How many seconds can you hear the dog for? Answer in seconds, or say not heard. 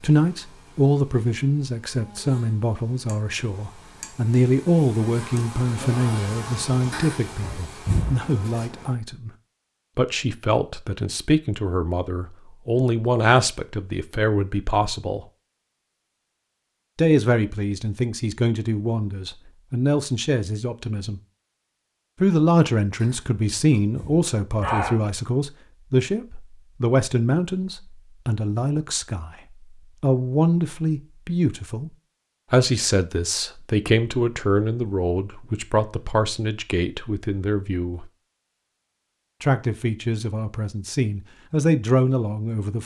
4 s.